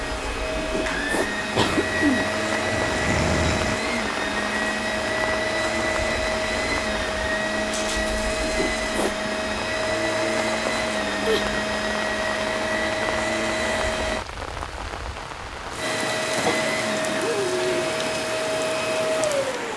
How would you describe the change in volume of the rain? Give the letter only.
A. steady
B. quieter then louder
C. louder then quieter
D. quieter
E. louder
A.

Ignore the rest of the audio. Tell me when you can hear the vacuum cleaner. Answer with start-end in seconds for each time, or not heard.
0.0-14.2, 15.8-19.7.